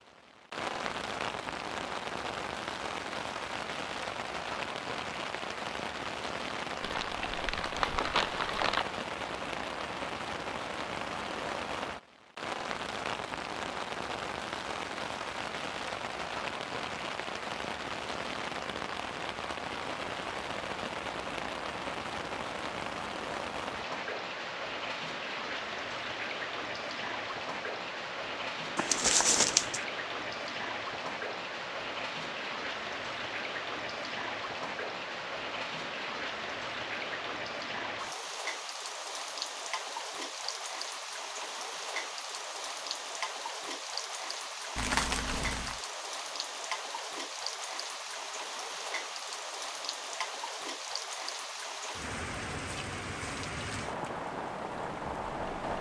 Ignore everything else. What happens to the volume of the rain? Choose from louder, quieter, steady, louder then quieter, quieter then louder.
steady.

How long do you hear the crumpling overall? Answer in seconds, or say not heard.
4 s.